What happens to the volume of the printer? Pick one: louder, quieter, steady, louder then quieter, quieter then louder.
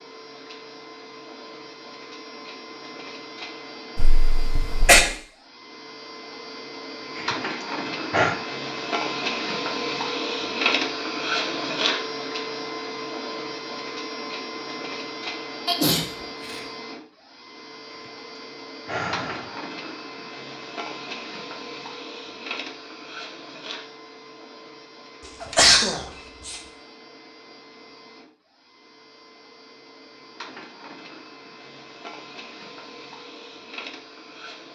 louder then quieter.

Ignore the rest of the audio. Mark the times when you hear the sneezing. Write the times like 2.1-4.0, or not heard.
4.0-5.0, 15.7-16.6, 25.4-26.6.